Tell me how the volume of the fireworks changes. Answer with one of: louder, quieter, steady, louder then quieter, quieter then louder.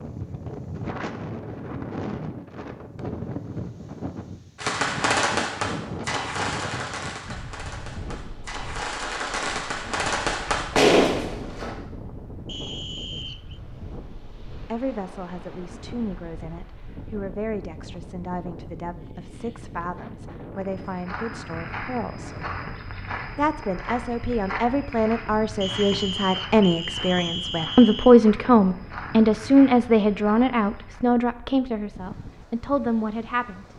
quieter then louder.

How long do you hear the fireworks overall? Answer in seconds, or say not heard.
7 s.